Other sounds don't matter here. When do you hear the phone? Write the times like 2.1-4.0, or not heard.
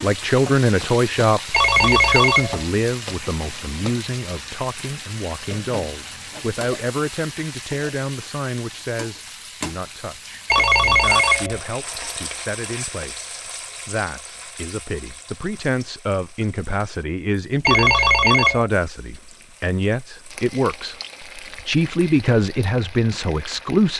1.5-2.6, 10.4-11.6, 17.6-18.7.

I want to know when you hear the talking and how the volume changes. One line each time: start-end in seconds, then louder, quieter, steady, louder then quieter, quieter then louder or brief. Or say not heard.
0.0-23.9 quieter then louder.